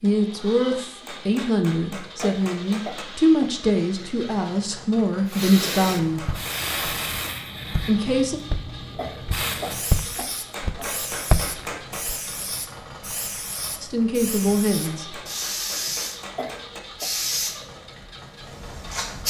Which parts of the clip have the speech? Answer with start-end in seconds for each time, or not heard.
0.0-6.3, 7.8-8.4, 13.8-15.2.